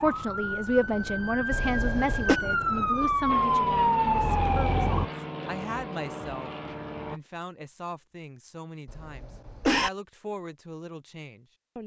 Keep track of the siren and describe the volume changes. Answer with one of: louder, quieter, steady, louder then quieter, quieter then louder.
louder.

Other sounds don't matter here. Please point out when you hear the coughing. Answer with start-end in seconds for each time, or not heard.
1.5-2.4, 8.8-9.9.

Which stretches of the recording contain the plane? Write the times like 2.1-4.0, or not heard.
3.2-7.2.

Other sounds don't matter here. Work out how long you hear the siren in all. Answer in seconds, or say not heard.
5 s.